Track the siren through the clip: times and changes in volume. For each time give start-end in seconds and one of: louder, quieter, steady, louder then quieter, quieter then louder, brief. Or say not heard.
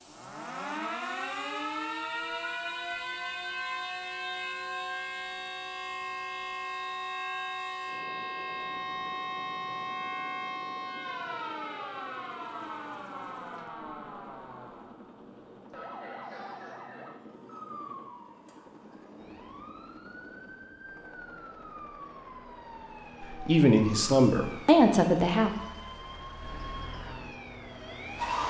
0.0-28.4 quieter.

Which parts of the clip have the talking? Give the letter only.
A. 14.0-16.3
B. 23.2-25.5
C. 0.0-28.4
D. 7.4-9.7
B.